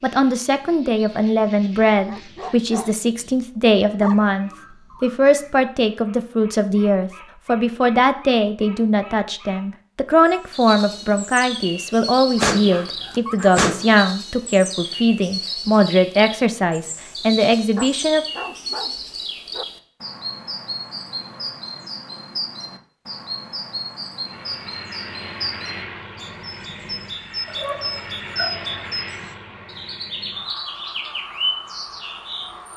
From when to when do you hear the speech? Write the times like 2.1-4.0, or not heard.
0.0-18.2.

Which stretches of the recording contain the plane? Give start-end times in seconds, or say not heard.
24.2-32.7.